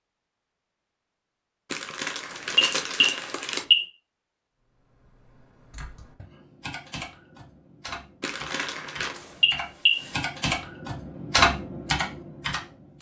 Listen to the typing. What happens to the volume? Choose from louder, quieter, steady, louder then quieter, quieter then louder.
louder.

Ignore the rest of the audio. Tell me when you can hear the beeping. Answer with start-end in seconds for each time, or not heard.
2.3-3.9, 9.2-10.2.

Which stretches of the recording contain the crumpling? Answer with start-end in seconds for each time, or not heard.
1.7-3.6, 8.2-9.2.